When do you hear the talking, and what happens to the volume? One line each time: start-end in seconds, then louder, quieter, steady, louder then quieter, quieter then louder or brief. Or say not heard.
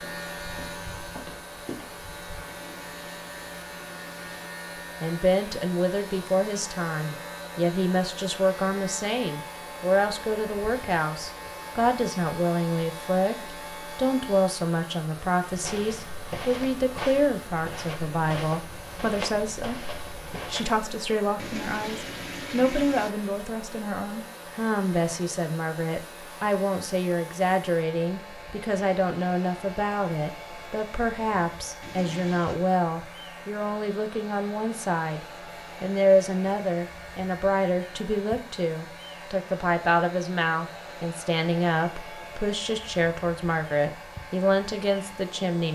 5.0-45.6 steady.